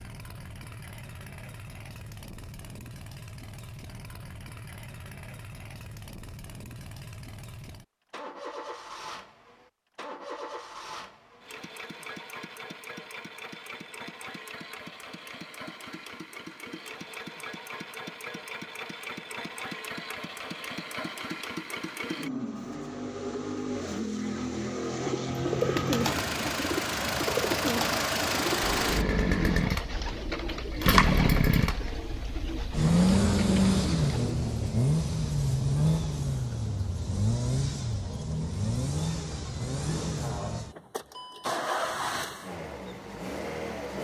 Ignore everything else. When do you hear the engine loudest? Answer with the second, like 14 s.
33 s.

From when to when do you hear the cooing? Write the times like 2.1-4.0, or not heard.
24.9-34.2.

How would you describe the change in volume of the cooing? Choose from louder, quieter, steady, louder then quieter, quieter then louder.
quieter.